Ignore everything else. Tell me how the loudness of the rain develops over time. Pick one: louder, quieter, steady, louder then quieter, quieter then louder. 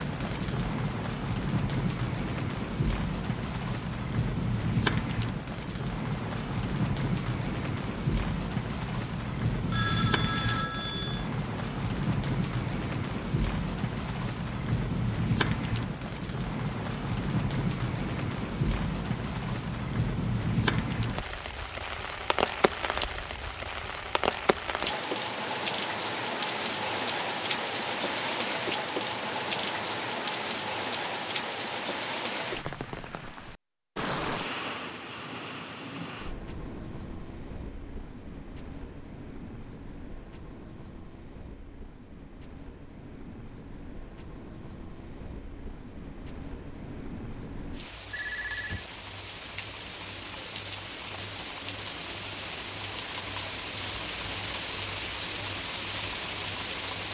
quieter then louder.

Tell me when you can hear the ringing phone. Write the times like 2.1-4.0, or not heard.
9.7-11.3, 48.1-48.9.